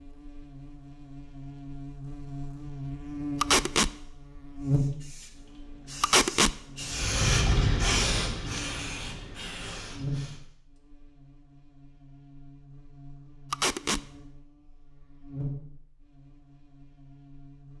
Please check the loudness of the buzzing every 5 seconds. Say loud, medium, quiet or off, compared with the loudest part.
loud, quiet, medium, medium.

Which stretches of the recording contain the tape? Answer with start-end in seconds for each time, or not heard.
3.4-3.9, 6.0-6.5, 13.5-14.1.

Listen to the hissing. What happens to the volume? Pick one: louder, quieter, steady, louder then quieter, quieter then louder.
louder then quieter.